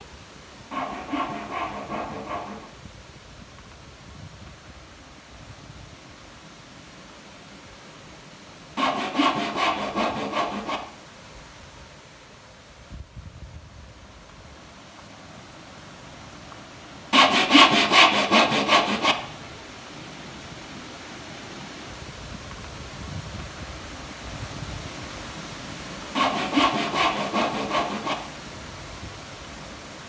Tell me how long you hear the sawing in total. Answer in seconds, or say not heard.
8 s.